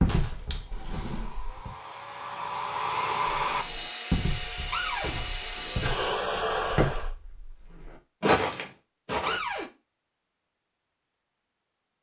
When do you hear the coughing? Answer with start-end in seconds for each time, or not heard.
not heard.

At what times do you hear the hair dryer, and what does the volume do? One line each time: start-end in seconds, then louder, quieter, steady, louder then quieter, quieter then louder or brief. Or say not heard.
0.0-7.1 louder.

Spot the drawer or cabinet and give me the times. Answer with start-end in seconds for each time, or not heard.
0.7-1.6, 4.7-5.2, 9.2-9.7.